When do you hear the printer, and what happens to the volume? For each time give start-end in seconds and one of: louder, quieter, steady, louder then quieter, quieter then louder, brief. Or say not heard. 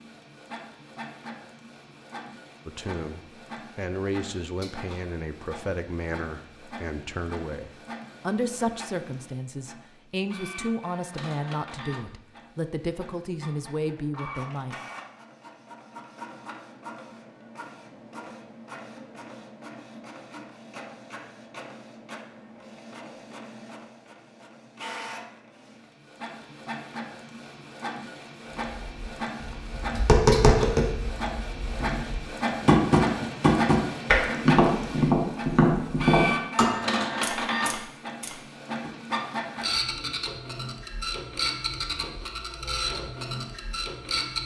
0.0-44.4 louder.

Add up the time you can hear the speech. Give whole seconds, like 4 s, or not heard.
12 s.